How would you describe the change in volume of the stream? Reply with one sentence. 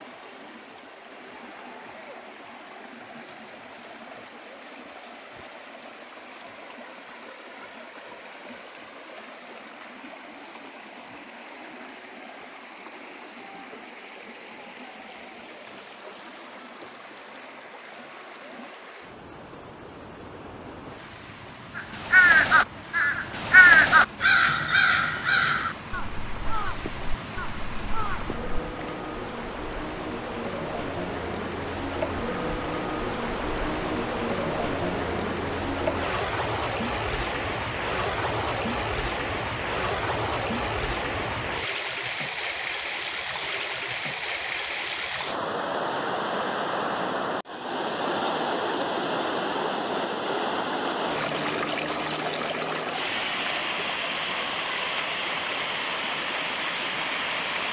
The loudness of the stream goes up.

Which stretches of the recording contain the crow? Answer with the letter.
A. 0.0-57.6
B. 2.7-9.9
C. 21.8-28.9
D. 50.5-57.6
C.